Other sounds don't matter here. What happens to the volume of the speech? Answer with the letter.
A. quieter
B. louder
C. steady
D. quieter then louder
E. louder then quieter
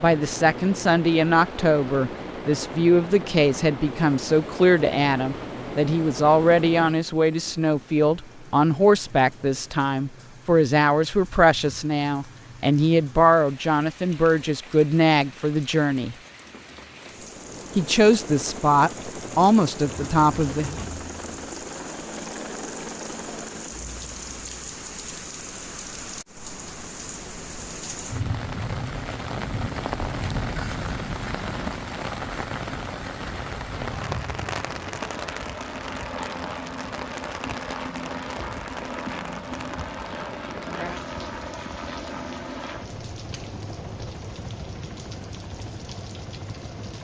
C.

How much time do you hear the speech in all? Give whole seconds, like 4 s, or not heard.
19 s.